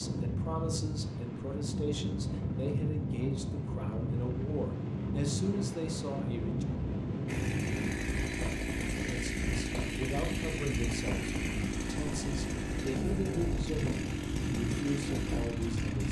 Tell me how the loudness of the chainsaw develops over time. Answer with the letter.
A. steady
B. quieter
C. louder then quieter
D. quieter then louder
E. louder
A.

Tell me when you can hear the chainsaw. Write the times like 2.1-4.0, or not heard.
7.2-16.0.